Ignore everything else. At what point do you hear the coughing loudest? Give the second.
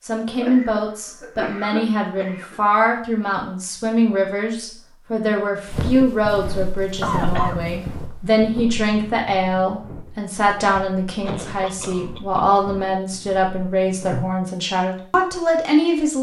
7 s.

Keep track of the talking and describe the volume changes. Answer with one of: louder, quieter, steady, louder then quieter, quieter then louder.
steady.